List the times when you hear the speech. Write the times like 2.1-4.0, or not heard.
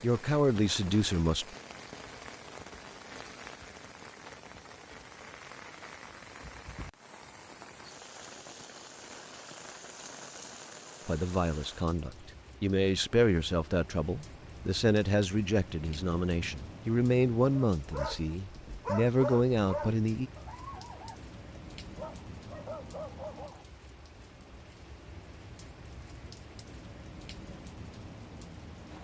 0.0-1.6, 11.1-20.3.